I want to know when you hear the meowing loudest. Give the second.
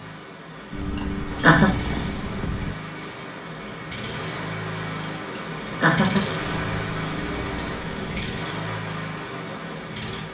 2 s.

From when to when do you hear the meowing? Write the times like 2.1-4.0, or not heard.
0.7-2.8, 6.5-8.2.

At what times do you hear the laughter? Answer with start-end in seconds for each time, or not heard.
0.9-1.7, 5.3-6.2.